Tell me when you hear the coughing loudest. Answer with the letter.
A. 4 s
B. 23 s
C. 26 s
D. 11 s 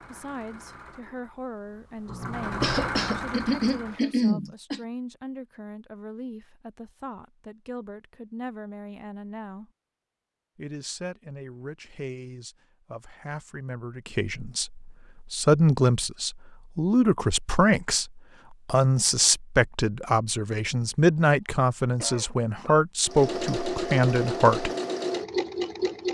A.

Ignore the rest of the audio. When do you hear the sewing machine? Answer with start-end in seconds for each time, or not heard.
0.0-4.2, 23.1-26.0.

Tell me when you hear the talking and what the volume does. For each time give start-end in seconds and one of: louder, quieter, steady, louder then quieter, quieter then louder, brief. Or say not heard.
0.1-9.7 steady
10.6-24.7 louder.